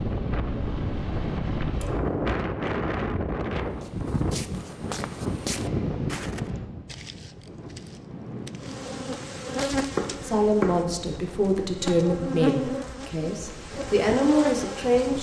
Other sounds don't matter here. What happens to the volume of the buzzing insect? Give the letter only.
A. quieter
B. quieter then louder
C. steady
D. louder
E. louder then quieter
B.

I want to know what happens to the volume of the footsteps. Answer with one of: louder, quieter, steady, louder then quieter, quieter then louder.
louder then quieter.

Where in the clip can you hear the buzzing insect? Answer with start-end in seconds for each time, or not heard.
8.6-15.1.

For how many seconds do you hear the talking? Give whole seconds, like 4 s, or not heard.
5 s.